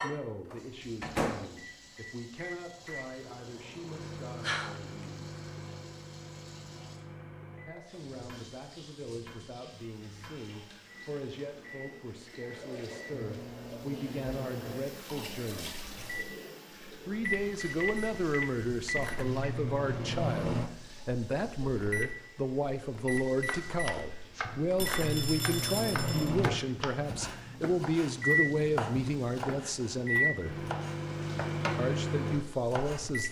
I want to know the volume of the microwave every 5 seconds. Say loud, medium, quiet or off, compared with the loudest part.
medium, quiet, quiet, medium, loud, loud, loud.